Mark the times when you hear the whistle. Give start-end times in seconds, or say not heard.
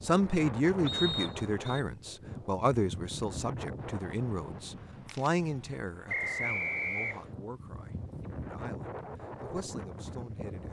0.8-1.8, 6.0-7.3.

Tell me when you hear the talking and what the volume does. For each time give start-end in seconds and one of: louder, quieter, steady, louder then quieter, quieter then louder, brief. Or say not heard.
0.0-10.6 quieter.